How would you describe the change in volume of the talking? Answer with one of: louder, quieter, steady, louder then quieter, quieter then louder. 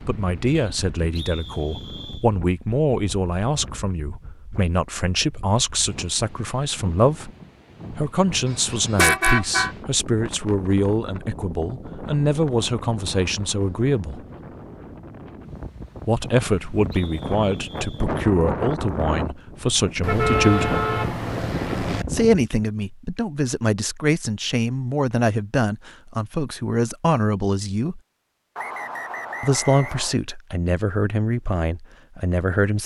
steady.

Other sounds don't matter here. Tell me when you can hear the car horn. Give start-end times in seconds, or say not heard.
8.4-9.8, 20.0-22.1.